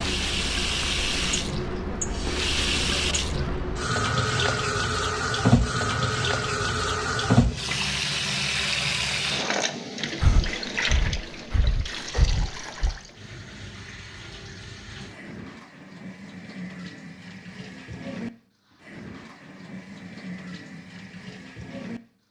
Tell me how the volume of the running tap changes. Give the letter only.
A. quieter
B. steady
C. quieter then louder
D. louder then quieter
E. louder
A.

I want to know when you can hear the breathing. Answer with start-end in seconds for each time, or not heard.
10.2-12.9.